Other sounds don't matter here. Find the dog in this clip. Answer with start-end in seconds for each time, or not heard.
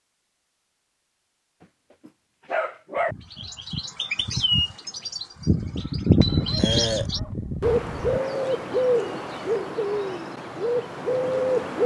2.0-3.1, 6.2-8.2.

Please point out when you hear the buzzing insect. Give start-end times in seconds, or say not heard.
not heard.